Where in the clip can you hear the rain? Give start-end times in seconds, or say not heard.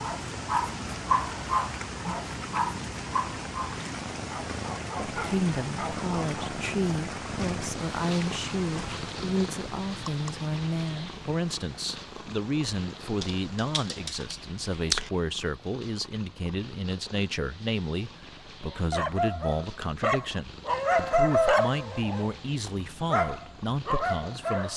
0.0-14.1.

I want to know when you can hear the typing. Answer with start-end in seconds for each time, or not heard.
13.2-15.1.